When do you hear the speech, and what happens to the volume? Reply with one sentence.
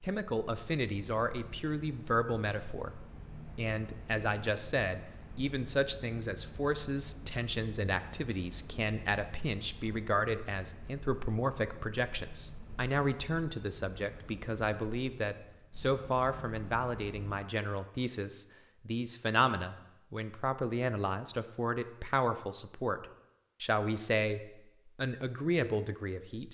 The speech can be heard from 0.0 to 26.4 s, at a steady volume.